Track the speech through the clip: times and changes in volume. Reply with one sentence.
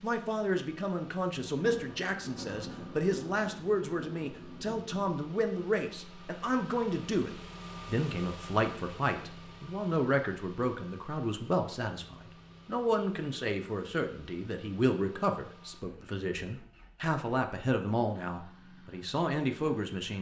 You can hear the speech from 0.0 to 20.1 s, at a steady volume.